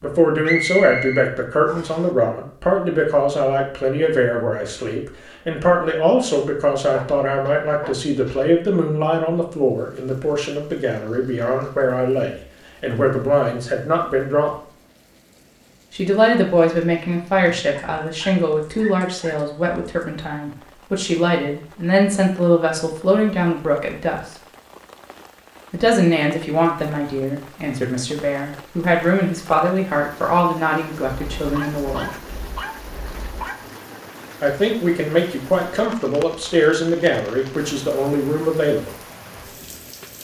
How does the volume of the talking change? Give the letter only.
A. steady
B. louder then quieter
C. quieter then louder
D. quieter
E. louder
A.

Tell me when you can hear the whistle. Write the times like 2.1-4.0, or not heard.
0.5-2.0.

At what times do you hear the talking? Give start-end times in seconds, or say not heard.
0.0-14.5, 15.9-24.3, 25.7-32.1, 34.4-38.9.